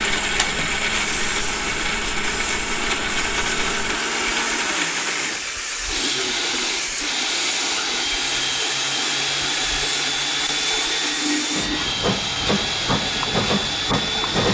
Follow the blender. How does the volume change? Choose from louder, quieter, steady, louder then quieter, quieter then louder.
steady.